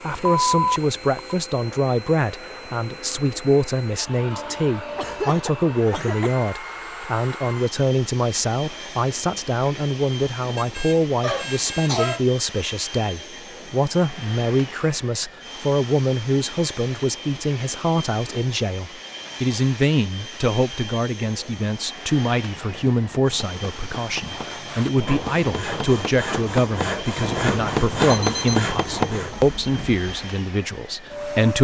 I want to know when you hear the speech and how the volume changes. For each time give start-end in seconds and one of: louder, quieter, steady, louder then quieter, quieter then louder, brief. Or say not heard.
0.0-31.5 steady.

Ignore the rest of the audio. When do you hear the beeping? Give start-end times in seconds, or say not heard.
0.1-1.4, 10.6-12.2, 28.1-28.6.